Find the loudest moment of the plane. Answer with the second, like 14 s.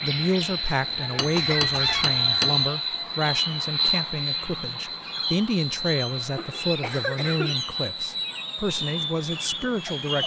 2 s.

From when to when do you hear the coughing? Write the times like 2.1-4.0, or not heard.
1.4-2.0, 6.3-7.5.